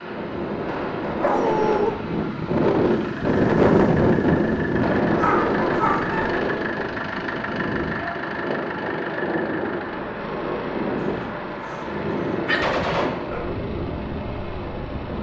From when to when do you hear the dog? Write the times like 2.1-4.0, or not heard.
1.2-1.9, 5.2-6.3, 11.0-12.7.